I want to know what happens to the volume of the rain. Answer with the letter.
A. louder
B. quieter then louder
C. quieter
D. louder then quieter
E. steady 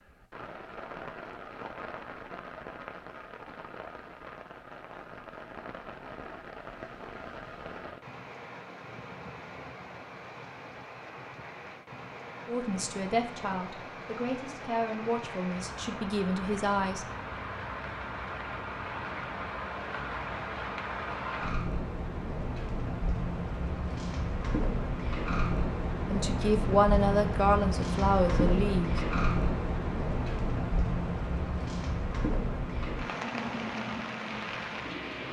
A.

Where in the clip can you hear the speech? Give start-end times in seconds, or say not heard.
12.4-17.1, 26.1-29.0.